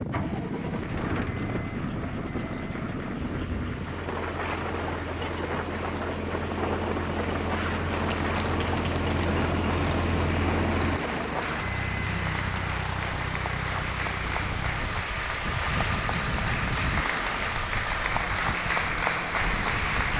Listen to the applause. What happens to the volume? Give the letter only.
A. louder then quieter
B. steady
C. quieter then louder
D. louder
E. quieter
D.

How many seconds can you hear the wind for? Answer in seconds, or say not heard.
20 s.